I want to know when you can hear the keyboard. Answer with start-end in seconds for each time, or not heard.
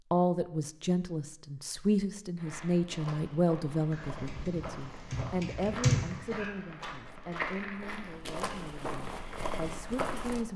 3.9-6.5.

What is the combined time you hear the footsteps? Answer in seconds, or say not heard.
8 s.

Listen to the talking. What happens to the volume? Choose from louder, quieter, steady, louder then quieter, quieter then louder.
quieter.